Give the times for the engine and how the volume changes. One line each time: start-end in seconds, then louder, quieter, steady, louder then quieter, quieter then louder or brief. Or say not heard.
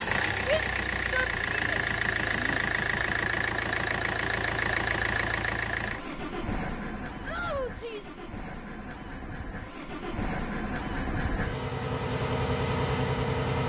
0.0-13.6 quieter then louder.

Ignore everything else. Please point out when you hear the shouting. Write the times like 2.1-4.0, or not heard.
0.5-2.6, 7.2-8.2.